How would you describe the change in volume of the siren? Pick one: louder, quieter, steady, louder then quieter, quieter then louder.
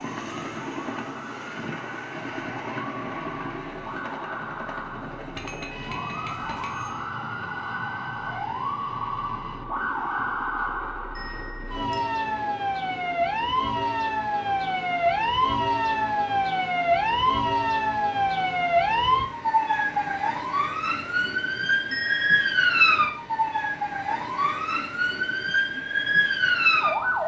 louder.